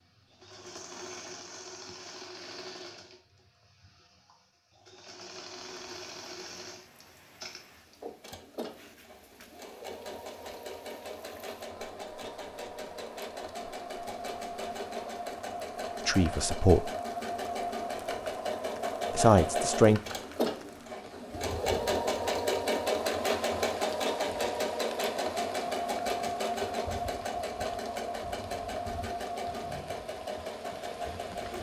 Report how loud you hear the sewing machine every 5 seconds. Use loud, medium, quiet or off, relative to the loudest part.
quiet, quiet, medium, loud, loud, loud, medium.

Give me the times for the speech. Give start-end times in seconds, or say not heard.
16.1-16.9, 19.1-20.0.